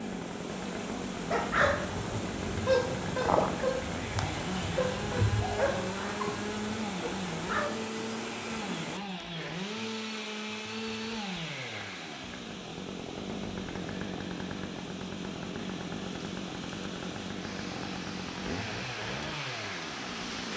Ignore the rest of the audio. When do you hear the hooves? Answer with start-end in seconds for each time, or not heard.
not heard.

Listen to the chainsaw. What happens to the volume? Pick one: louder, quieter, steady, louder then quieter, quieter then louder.
steady.